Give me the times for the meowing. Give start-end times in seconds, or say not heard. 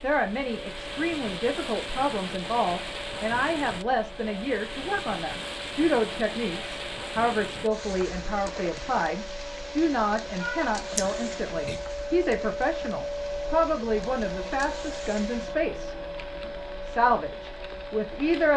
10.3-11.8.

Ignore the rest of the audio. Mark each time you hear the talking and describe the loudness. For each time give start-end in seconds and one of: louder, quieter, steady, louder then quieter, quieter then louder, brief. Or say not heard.
0.0-18.5 steady.